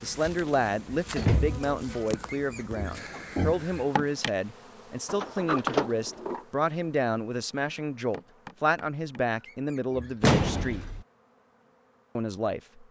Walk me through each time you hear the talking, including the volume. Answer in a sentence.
The talking can be heard from 0.0 to 10.8 s, at a steady volume; and briefly from 12.2 to 12.8 s.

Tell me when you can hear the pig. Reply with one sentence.
You can hear the pig from 2.1 to 3.9 s and from 9.3 to 10.9 s.